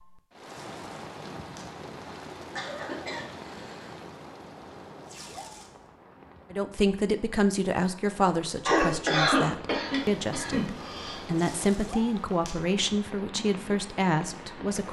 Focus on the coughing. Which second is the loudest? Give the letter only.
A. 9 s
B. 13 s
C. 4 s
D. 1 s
A.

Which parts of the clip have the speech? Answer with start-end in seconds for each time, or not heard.
6.5-14.8.